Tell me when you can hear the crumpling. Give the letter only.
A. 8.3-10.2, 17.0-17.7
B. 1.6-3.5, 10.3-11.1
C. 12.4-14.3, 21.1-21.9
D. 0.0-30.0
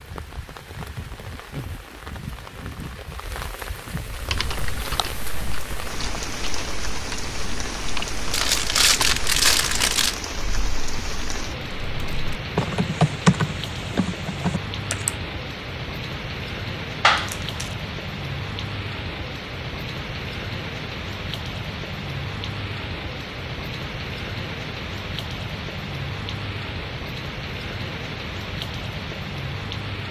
A.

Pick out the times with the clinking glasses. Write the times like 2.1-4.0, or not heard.
not heard.